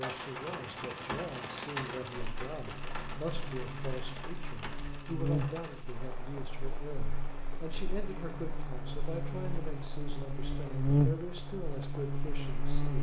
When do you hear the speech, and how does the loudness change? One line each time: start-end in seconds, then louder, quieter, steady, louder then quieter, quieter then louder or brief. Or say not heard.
0.0-12.9 steady.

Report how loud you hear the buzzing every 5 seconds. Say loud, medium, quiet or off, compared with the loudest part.
quiet, medium, loud.